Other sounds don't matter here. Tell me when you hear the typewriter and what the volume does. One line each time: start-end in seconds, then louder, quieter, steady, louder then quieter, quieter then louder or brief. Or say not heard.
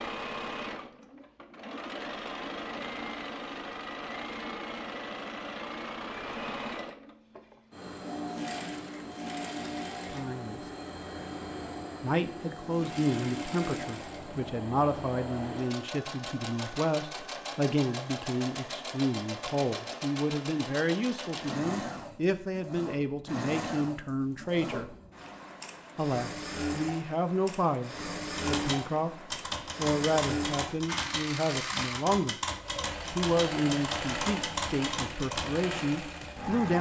28.4-35.5 steady.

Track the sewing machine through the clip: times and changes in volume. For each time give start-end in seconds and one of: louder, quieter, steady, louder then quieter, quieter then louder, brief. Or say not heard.
0.0-36.7 steady.